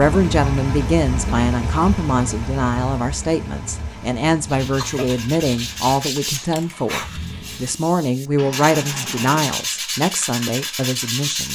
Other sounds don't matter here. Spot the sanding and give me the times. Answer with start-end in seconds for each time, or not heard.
4.5-11.5.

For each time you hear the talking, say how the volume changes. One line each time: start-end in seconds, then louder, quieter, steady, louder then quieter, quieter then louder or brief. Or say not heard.
0.0-11.5 steady.